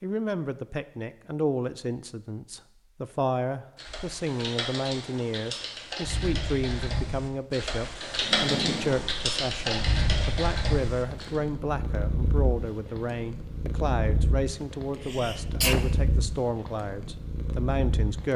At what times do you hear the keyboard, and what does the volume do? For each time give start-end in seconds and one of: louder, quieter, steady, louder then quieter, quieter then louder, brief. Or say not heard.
3.8-11.4 louder.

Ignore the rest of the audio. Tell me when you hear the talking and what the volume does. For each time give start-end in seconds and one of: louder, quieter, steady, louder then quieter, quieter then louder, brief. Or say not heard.
0.0-18.3 steady.